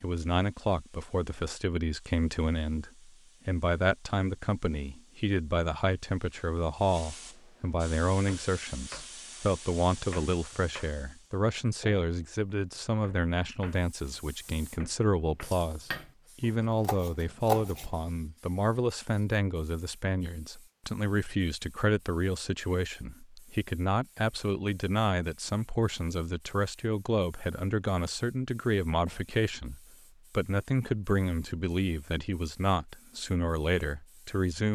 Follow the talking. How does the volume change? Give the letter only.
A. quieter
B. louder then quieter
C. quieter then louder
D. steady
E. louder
D.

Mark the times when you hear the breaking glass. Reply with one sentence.
The breaking glass can't be heard in this clip.